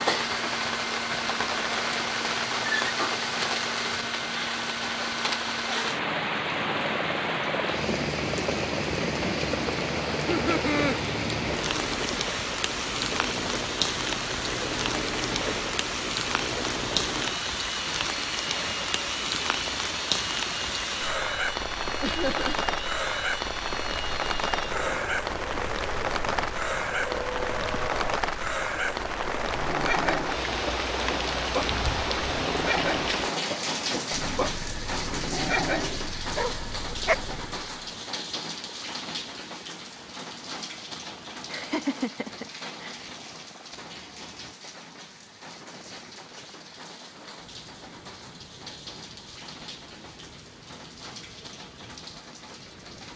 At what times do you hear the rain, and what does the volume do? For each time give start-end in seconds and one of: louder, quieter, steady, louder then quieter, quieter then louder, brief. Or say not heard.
0.0-53.1 quieter.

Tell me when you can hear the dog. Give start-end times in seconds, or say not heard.
29.6-37.1.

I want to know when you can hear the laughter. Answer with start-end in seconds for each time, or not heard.
10.2-10.9, 22.0-22.6, 41.5-43.0.